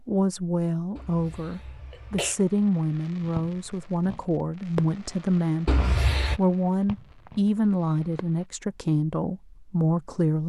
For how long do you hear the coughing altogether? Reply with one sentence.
You can hear the coughing for 2 seconds altogether.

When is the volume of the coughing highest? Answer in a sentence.
The volume of the coughing peaks at 6 seconds.